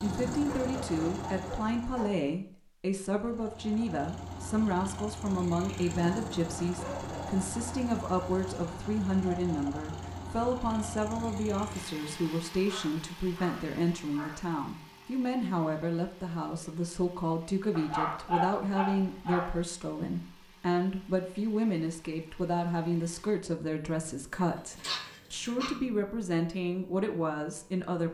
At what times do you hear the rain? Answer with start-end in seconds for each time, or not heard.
not heard.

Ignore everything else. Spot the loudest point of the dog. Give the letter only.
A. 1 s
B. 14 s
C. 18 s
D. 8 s
C.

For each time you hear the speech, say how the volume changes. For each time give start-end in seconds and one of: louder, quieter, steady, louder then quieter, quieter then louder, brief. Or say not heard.
0.0-28.0 steady.